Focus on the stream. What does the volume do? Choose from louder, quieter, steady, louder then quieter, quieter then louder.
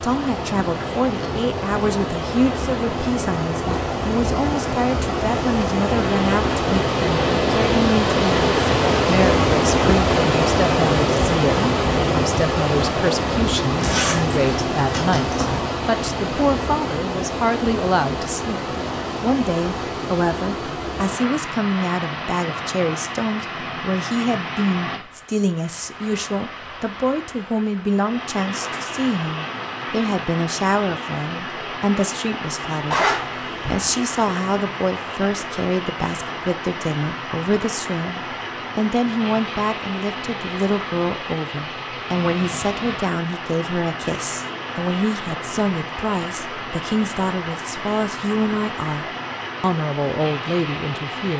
quieter.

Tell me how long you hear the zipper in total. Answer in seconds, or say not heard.
3 s.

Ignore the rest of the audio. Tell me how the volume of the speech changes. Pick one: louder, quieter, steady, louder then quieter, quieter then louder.
steady.